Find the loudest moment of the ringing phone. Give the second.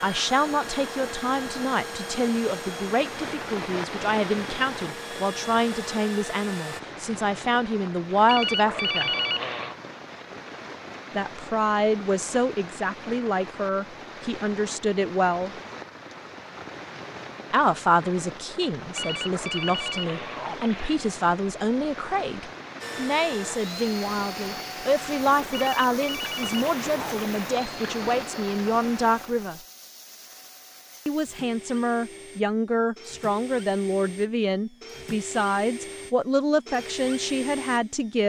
9 s.